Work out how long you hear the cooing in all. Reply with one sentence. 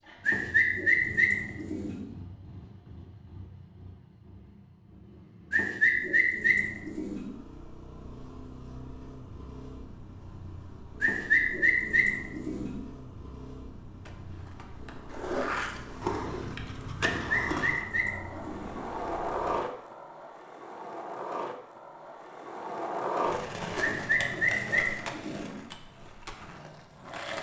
The cooing can be heard for 9 seconds in total.